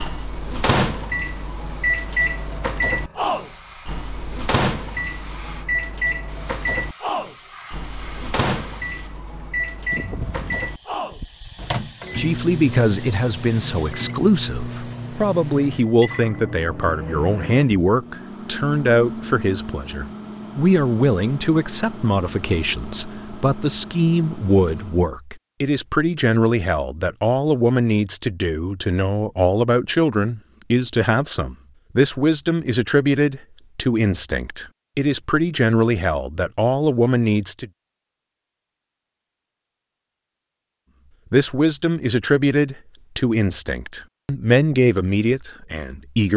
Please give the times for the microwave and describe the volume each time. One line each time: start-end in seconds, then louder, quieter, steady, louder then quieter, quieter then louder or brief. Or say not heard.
0.0-25.1 quieter.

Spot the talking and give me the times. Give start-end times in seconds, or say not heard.
12.2-37.7, 41.3-46.3.